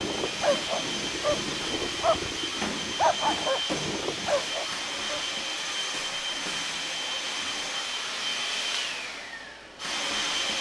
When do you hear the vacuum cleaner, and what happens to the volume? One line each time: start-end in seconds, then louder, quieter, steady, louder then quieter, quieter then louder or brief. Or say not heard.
0.0-10.5 steady.